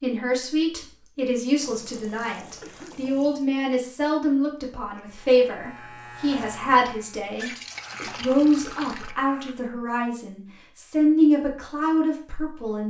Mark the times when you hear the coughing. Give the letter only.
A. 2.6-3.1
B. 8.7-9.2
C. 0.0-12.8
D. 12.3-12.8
A.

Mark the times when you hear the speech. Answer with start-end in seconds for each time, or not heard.
0.0-12.8.